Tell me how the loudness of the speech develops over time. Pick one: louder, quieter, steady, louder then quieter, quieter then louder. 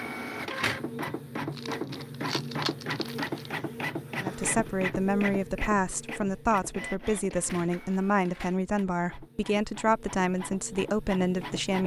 steady.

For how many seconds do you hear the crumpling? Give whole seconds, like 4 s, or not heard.
2 s.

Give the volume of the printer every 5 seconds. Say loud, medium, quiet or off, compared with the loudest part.
loud, medium, medium.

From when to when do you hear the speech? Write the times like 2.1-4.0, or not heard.
4.2-11.8.